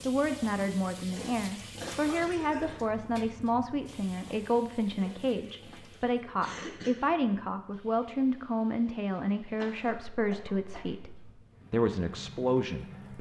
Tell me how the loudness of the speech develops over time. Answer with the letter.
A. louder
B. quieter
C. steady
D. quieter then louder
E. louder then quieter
C.